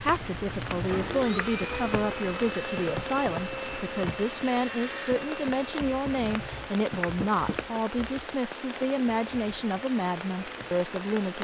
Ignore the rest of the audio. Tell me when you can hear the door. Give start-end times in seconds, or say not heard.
0.4-1.2, 6.9-7.6.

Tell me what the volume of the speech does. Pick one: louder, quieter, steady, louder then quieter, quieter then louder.
steady.